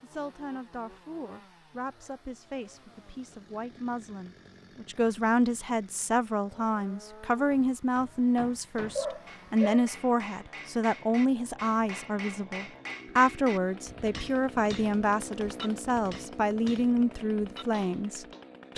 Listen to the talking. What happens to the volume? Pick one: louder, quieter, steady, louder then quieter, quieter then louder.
louder.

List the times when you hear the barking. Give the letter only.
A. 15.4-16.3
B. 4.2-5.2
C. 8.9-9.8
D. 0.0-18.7
C.